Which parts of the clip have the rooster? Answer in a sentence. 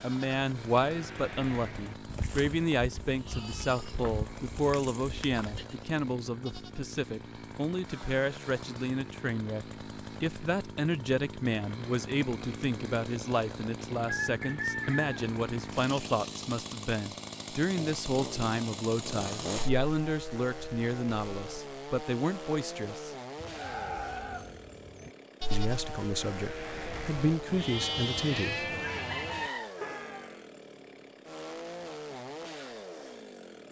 You can hear the rooster from 14.0 to 15.2 s and from 28.8 to 30.2 s.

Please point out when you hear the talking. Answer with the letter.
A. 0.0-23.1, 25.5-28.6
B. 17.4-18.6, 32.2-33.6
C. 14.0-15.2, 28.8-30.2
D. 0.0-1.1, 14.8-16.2
A.